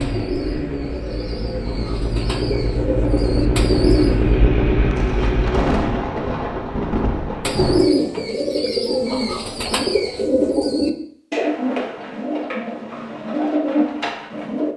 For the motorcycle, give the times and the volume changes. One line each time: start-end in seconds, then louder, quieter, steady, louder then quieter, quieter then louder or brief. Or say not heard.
0.0-6.0 louder.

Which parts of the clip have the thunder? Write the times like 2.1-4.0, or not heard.
5.0-7.9.